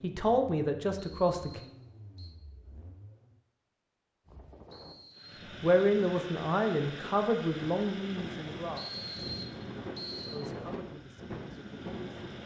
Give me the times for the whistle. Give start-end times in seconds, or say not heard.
1.0-2.4, 4.7-5.4, 8.8-10.4.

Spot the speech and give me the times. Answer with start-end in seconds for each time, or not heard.
0.0-1.6, 5.6-8.8, 10.3-12.2.